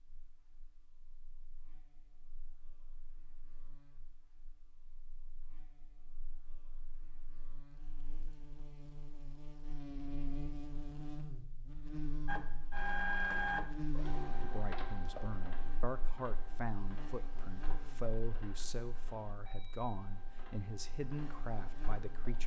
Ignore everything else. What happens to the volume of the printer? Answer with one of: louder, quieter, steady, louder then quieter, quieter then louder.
quieter.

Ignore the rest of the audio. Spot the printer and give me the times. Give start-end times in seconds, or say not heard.
12.2-22.4.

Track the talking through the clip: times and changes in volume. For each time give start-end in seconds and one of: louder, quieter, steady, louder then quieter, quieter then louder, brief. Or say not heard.
14.4-22.4 steady.